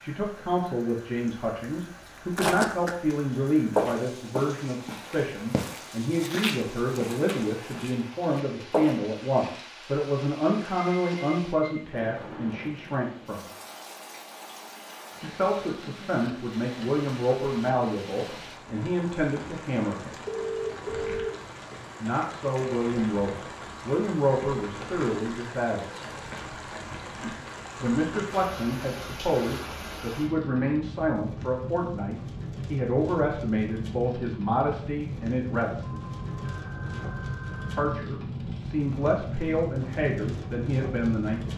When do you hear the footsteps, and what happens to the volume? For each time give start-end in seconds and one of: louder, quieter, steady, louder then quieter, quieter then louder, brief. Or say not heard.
2.4-3.1 brief
3.8-9.0 quieter.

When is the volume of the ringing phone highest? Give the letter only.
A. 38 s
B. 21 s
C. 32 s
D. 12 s
B.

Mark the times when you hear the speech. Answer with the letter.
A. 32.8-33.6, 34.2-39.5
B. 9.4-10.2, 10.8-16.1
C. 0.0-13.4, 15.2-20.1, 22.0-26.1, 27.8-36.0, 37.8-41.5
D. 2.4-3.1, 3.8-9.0
C.